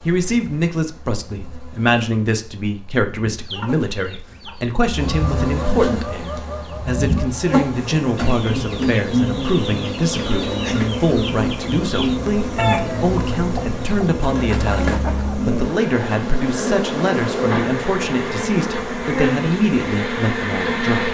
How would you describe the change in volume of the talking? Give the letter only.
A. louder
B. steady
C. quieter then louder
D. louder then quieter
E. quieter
B.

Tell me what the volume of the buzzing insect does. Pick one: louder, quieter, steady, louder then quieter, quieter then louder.
louder.